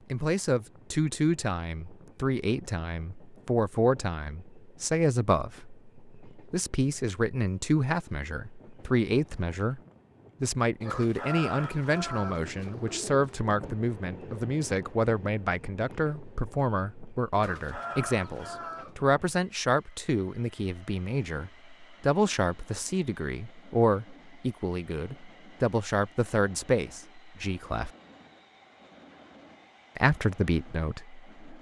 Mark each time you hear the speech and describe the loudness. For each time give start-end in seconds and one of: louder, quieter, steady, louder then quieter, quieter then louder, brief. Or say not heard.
0.1-9.8 steady
10.4-27.9 steady
29.9-31.2 brief.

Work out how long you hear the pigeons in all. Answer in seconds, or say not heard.
4 s.